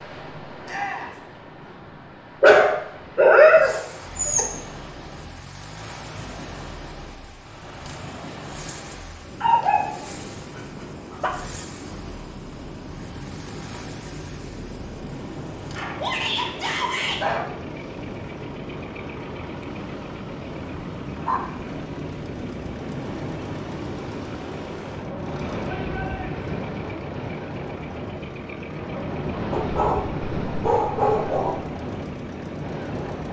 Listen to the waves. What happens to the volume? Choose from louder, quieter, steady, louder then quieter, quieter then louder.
louder.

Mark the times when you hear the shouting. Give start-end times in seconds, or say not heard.
0.7-1.1, 15.9-17.2, 25.6-26.4.